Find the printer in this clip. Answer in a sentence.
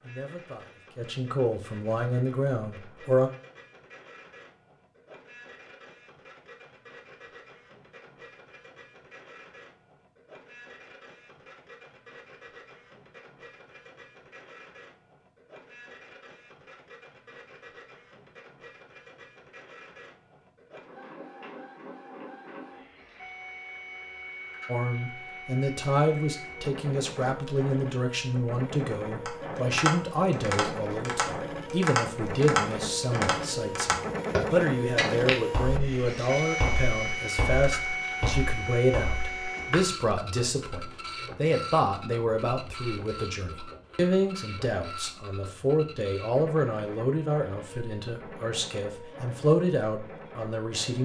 You can hear the printer from 0.0 to 51.0 s.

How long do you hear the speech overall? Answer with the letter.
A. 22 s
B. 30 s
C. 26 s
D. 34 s
B.